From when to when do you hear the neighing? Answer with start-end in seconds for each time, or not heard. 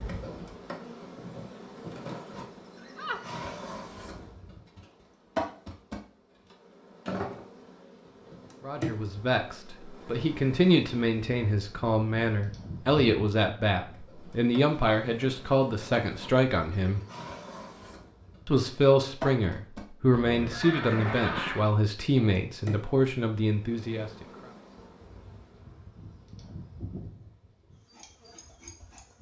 2.8-3.5, 20.1-21.7.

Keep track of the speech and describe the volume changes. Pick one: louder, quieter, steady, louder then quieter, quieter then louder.
steady.